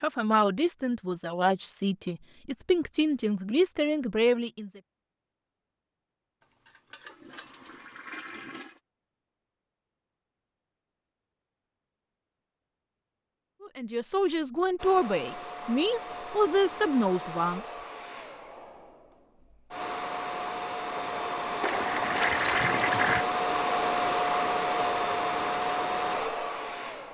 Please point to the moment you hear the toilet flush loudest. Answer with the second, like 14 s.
23 s.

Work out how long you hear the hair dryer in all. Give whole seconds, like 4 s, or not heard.
12 s.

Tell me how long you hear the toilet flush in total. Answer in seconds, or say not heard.
4 s.